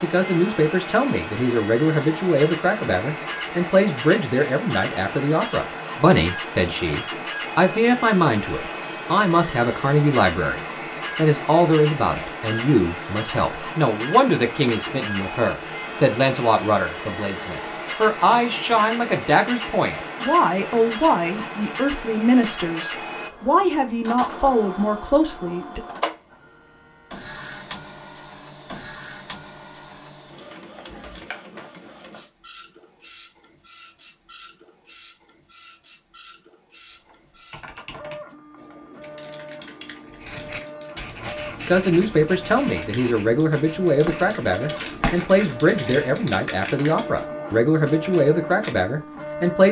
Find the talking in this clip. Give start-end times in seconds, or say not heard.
0.0-25.8, 41.6-49.6.